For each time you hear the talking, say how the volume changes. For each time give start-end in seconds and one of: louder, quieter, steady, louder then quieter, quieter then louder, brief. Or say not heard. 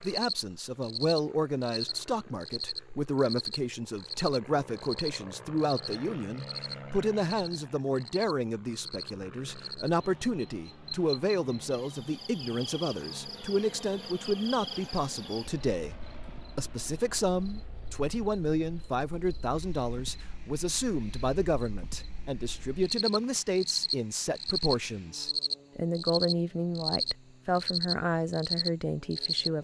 0.0-29.5 steady.